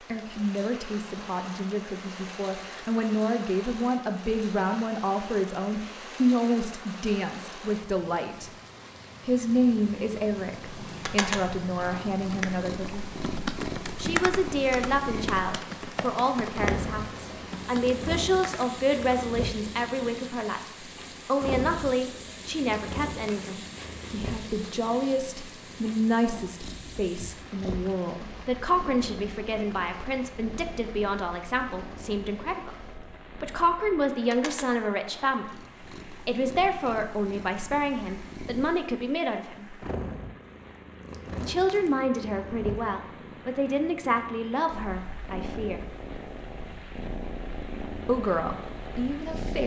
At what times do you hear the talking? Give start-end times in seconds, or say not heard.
0.1-8.5, 9.2-13.1, 13.9-35.6, 36.2-39.8, 41.4-45.8, 48.0-49.6.